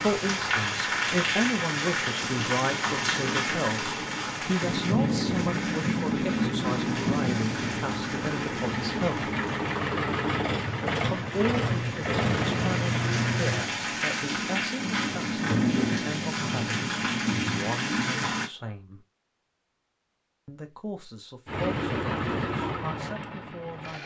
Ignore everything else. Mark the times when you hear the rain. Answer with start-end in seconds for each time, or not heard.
0.0-18.5.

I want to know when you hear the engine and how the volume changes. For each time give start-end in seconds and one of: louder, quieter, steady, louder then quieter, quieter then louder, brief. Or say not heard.
0.0-13.7 louder
21.4-24.0 brief.